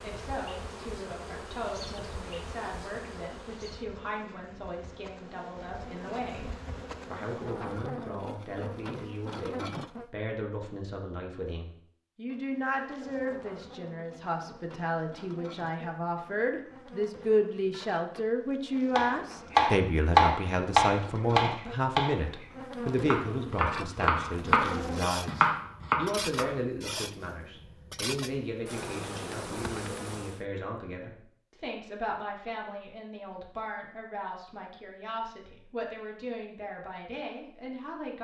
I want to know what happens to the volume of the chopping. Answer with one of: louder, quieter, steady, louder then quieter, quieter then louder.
quieter then louder.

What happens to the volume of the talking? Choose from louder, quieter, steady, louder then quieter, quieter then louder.
louder then quieter.